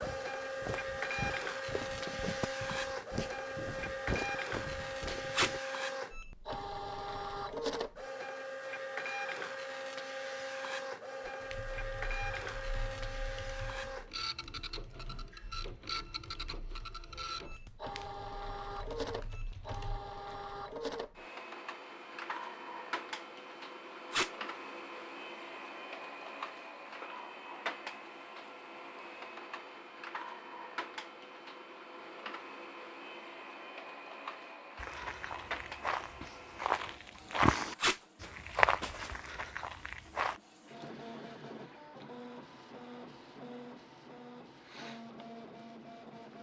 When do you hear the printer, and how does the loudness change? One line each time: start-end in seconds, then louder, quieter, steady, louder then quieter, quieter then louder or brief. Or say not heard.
0.0-46.3 quieter.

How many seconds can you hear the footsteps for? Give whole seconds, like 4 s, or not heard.
11 s.